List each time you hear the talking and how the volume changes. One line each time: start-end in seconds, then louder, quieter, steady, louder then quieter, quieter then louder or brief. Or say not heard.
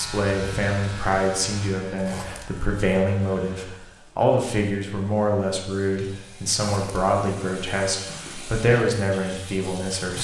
0.0-10.1 steady.